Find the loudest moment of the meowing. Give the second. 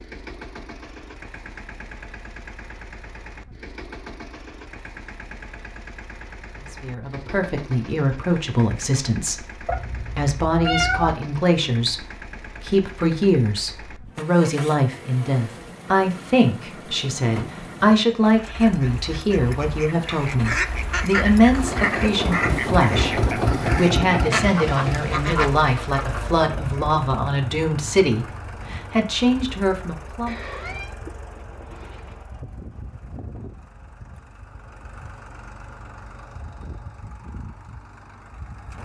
11 s.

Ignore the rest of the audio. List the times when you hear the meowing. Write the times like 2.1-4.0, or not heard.
9.7-11.2, 30.2-32.2.